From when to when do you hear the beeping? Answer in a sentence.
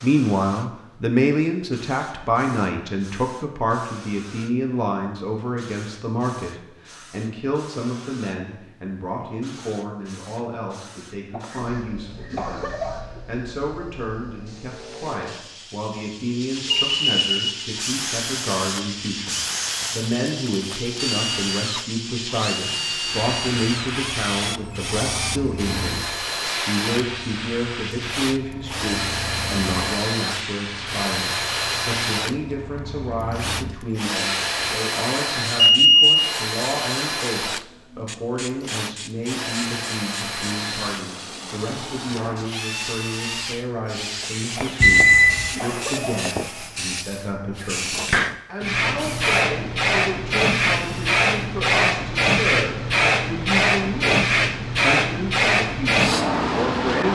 You can hear the beeping from 16.7 to 17.5 s, from 35.5 to 36.3 s and from 44.8 to 45.5 s.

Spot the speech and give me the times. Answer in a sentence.
The speech can be heard from 0.0 to 57.0 s.